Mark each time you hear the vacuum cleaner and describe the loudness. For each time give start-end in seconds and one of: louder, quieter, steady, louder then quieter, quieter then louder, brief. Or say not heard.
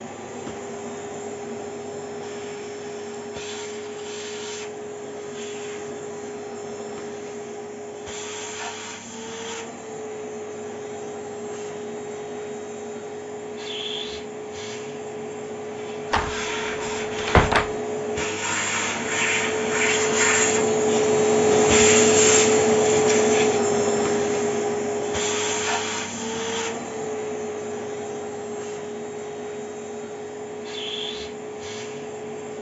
0.0-32.5 louder then quieter.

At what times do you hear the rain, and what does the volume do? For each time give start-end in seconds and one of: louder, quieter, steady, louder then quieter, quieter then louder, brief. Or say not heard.
not heard.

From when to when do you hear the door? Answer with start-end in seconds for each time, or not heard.
16.1-17.7.